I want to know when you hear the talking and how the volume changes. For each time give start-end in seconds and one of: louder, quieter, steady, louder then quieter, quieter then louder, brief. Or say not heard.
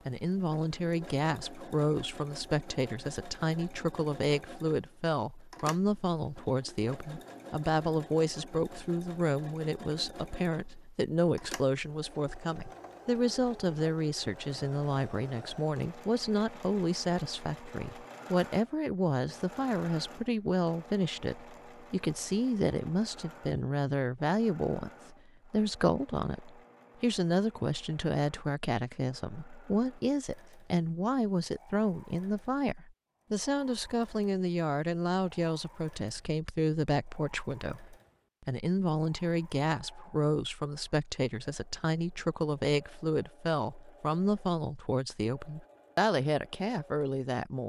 0.1-47.6 steady.